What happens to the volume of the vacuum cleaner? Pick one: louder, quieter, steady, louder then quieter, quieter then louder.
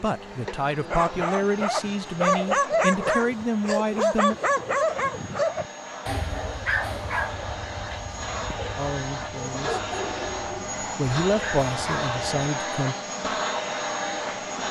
louder.